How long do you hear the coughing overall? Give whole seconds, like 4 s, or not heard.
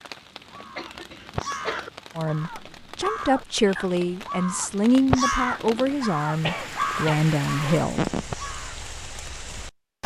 2 s.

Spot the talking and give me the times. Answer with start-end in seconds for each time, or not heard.
2.1-8.1.